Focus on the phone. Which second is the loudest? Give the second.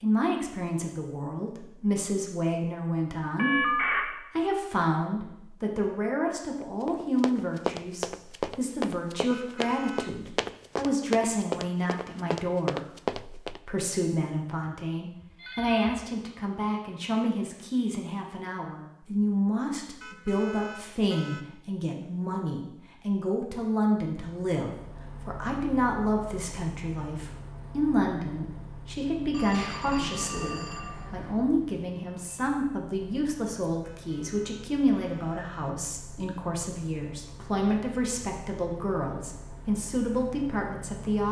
4 s.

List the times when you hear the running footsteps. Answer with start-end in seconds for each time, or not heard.
6.6-13.6.